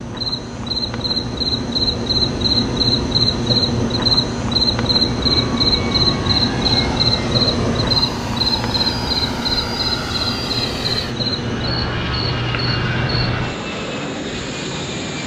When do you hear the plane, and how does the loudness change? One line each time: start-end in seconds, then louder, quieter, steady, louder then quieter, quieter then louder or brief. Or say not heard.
5.0-15.2 steady.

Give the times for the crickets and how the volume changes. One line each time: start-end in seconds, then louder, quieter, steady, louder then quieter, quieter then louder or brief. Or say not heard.
0.0-15.2 quieter.